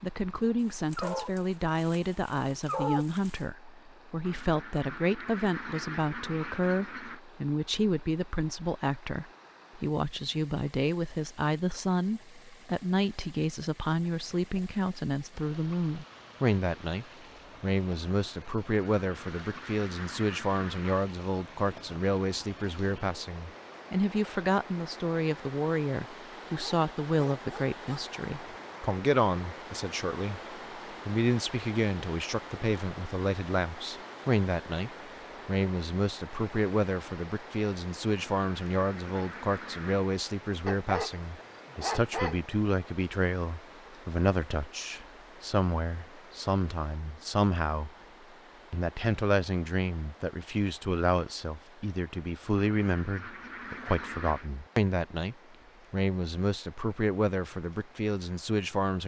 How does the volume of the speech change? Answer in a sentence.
The volume of the speech stays about the same.